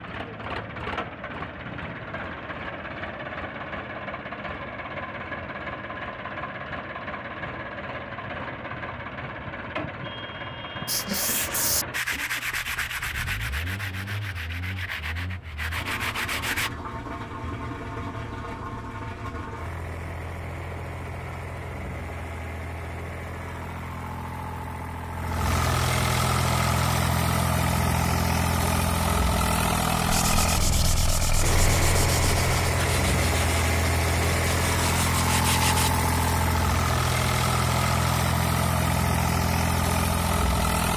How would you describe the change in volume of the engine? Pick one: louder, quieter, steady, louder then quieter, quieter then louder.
louder.